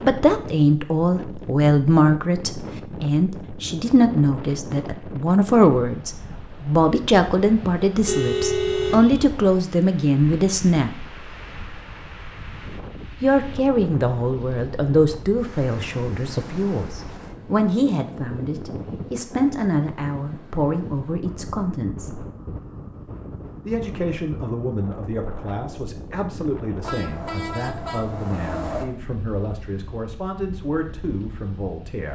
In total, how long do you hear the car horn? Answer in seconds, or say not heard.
3 s.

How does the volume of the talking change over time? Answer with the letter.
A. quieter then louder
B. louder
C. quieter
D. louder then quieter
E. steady
C.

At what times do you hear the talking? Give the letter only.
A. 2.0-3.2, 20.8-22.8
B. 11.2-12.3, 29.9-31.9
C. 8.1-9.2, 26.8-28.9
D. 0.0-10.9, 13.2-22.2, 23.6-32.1
D.